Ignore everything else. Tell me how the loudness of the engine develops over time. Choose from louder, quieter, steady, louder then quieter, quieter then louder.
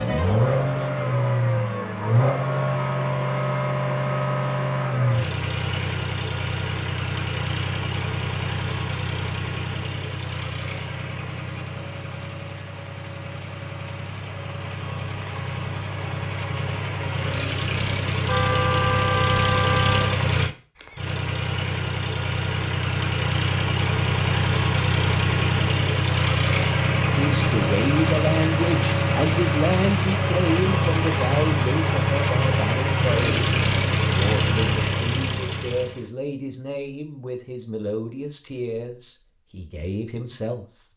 quieter then louder.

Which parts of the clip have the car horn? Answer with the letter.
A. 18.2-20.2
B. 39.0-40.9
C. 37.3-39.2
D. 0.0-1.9
A.